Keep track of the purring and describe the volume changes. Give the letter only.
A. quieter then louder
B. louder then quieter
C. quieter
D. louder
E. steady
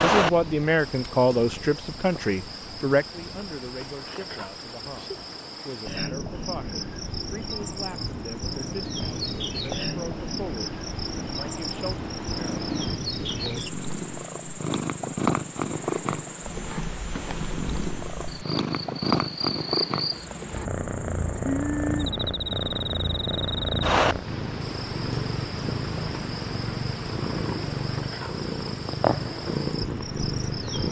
D.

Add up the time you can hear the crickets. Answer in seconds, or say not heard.
31 s.